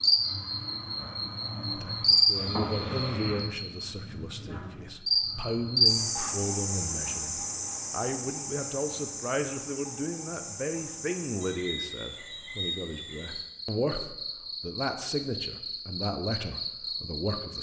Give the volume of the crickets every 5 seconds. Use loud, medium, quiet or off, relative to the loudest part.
loud, loud, medium, medium.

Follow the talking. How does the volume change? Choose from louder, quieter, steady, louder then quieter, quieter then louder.
steady.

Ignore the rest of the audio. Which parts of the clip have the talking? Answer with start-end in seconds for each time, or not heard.
1.7-17.5.